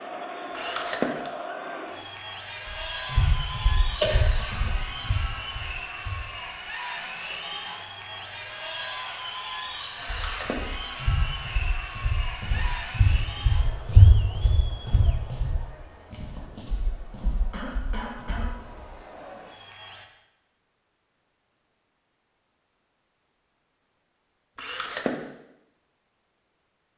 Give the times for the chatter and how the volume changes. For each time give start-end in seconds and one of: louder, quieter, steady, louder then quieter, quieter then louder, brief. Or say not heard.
0.0-20.1 quieter.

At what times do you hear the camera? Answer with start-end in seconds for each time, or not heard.
0.5-1.3, 10.0-10.8, 24.6-25.1.